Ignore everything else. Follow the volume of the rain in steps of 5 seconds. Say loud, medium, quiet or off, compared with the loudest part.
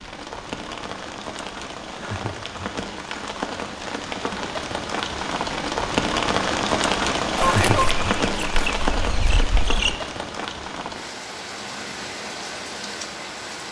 medium, loud, medium.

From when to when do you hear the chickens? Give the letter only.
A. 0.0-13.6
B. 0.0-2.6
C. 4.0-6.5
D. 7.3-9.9
D.